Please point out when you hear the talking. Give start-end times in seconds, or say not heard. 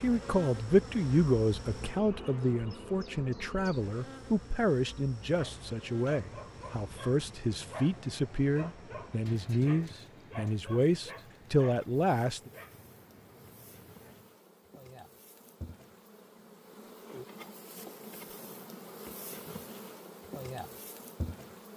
0.0-12.5.